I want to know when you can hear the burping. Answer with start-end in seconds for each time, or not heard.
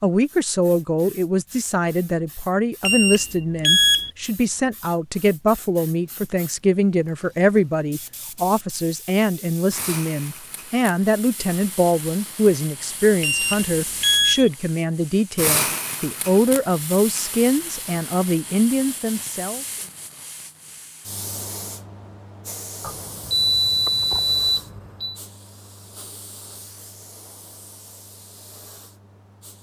not heard.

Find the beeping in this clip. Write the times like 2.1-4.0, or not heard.
2.9-4.1, 13.2-14.5, 22.8-25.1.